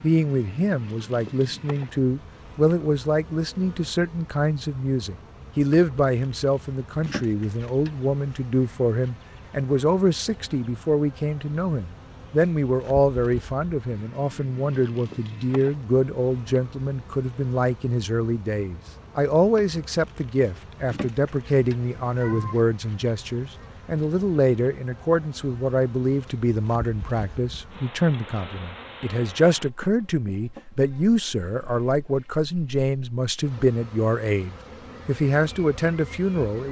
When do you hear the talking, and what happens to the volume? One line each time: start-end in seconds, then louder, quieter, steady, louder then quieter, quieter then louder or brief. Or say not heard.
0.0-36.6 steady.